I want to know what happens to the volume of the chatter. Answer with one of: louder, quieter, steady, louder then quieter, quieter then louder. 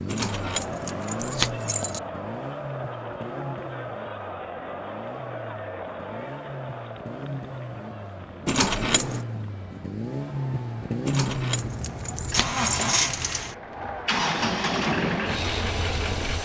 quieter then louder.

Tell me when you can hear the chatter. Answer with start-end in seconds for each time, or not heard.
0.1-16.4.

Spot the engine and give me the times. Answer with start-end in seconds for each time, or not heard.
0.0-16.4.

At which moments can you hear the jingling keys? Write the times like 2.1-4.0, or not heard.
0.1-2.0, 8.4-9.2, 11.1-12.9.